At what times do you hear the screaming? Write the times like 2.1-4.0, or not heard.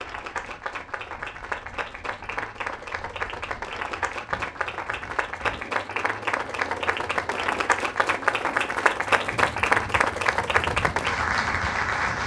not heard.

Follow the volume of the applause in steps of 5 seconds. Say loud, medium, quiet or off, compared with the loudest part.
medium, loud, loud.